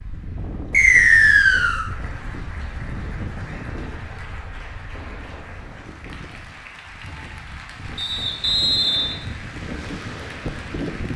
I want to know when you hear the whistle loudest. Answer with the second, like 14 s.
1 s.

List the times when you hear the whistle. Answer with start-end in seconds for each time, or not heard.
0.7-1.9, 8.0-9.2.